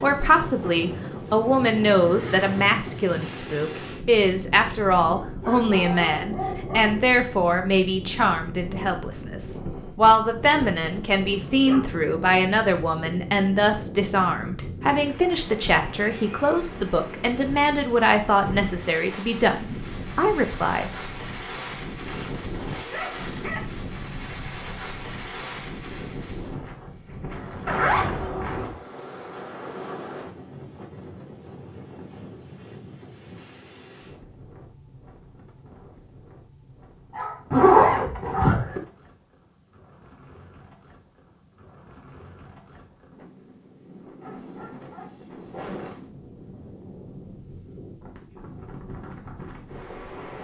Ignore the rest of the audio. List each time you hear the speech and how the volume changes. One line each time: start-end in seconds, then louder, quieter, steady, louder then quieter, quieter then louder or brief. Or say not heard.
0.0-20.9 steady.